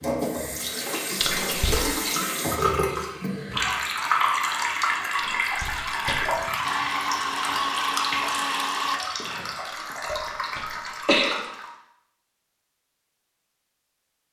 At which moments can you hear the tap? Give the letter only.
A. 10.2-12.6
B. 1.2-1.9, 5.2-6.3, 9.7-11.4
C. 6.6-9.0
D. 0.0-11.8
D.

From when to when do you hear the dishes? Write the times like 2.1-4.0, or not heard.
not heard.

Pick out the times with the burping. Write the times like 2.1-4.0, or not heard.
not heard.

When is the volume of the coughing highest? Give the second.
11 s.